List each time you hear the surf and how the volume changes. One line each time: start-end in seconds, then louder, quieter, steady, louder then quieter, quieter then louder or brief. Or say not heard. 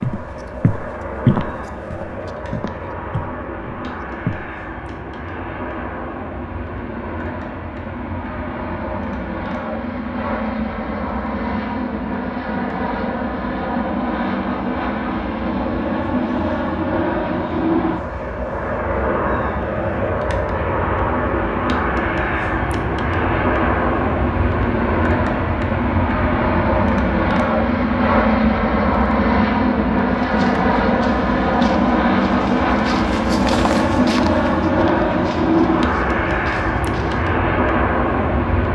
not heard.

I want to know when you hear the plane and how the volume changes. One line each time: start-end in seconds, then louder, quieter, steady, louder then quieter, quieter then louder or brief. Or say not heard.
0.0-38.7 louder.